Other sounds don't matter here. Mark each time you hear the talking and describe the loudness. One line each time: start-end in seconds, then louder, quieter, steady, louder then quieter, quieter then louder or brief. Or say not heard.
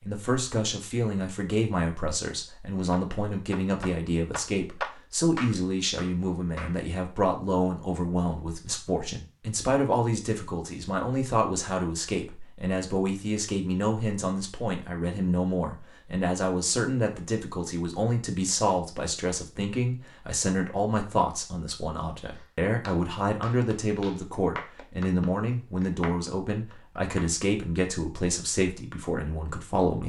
0.0-30.0 steady.